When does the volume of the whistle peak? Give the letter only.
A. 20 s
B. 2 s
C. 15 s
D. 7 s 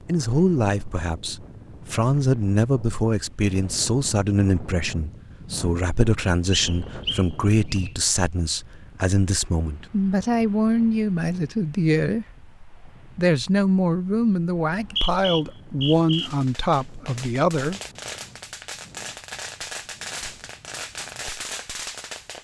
C.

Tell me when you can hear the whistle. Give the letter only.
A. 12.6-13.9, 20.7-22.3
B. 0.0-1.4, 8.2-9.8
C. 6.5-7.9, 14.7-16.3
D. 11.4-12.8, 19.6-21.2
C.